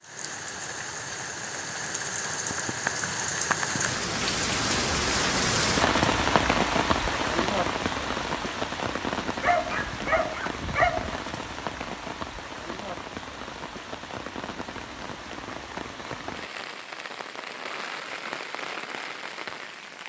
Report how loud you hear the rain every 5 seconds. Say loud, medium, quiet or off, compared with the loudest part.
loud, loud, medium, medium.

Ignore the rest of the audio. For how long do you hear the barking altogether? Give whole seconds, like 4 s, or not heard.
2 s.